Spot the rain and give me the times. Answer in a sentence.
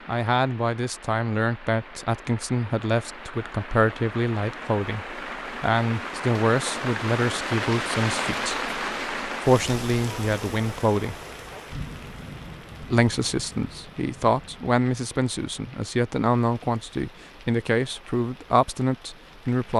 The rain can be heard from 0.0 to 19.7 s.